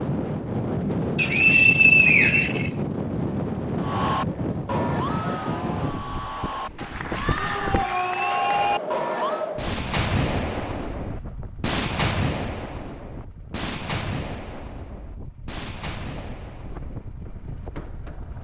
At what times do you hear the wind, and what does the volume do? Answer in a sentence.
You can hear the wind from 0.0 to 18.3 s, getting quieter.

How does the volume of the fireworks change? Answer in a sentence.
The volume of the fireworks goes down.